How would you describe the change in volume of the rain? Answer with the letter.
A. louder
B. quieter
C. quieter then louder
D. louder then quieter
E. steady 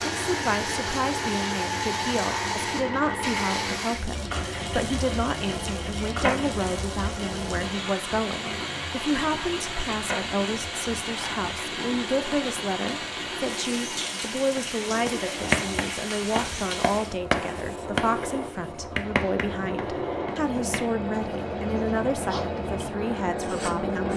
E.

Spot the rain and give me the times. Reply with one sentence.
You can hear the rain from 0.0 to 17.1 s.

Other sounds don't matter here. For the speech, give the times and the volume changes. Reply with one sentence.
The speech can be heard from 0.2 to 24.1 s, at a steady volume.